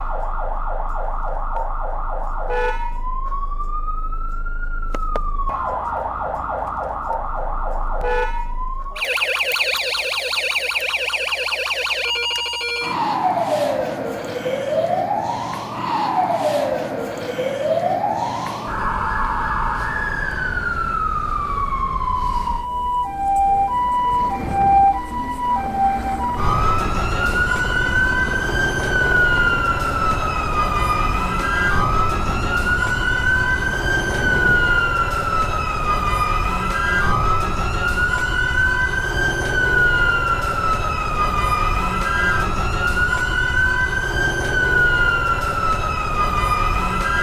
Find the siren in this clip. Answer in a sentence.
You can hear the siren from 0.0 to 47.1 s.